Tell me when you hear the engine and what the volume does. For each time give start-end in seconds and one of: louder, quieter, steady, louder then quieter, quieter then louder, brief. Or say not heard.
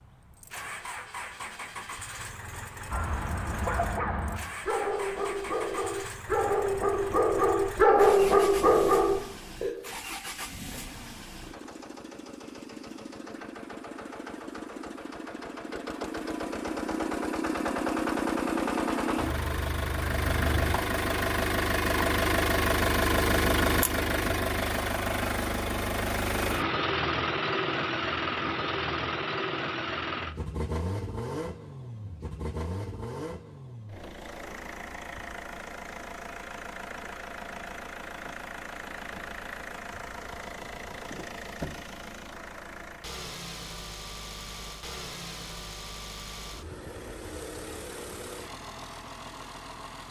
0.0-50.0 louder then quieter.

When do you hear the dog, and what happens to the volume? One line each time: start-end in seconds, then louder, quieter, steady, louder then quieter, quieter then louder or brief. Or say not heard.
2.9-9.7 louder.